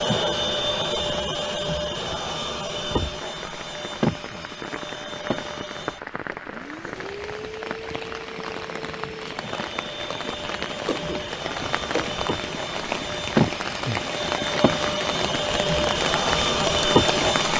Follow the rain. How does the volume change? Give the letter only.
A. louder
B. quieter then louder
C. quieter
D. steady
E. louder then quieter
A.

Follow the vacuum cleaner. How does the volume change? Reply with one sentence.
The volume of the vacuum cleaner goes down, then up.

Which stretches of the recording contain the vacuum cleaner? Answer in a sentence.
The vacuum cleaner can be heard from 0.0 to 17.5 s.